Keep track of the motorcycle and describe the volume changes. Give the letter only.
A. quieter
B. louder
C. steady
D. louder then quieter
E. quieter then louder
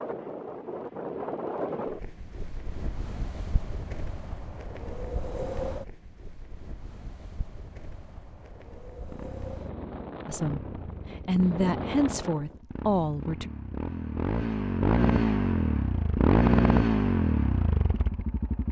B.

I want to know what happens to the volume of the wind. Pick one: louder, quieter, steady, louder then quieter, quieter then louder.
quieter then louder.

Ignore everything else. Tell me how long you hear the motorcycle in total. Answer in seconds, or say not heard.
10 s.